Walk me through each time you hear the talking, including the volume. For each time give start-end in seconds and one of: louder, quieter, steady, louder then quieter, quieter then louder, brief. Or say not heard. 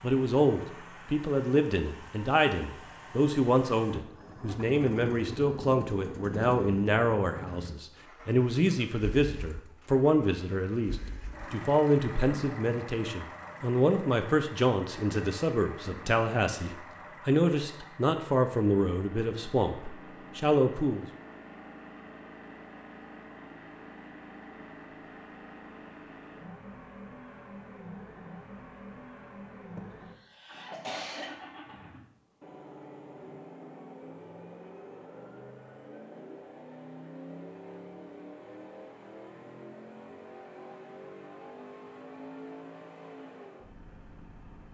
0.0-21.1 steady.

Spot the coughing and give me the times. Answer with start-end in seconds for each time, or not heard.
29.8-31.4.